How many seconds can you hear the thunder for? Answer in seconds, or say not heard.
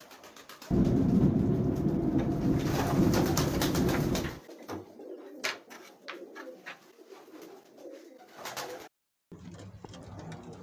4 s.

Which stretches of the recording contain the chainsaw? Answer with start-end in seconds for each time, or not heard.
not heard.